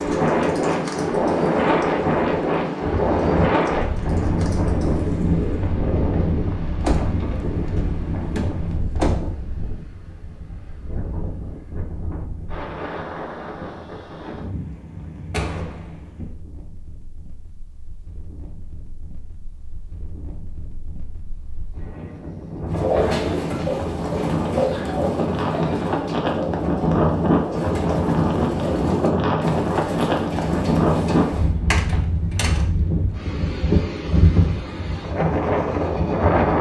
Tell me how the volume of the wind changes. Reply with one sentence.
The volume of the wind goes down, then up.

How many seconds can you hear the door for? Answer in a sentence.
The door can be heard for 4 seconds in total.